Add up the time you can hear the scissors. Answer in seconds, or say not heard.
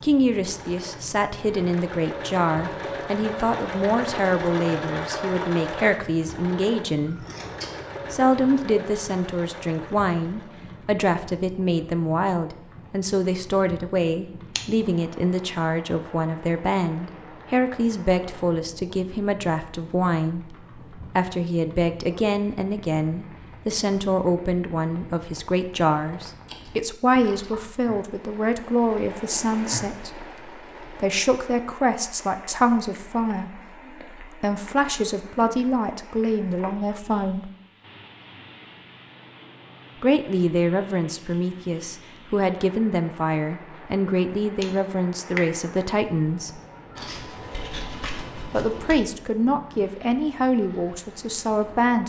4 s.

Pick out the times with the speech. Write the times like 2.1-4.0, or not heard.
0.0-7.2, 8.1-37.5, 40.0-46.6, 48.4-52.0.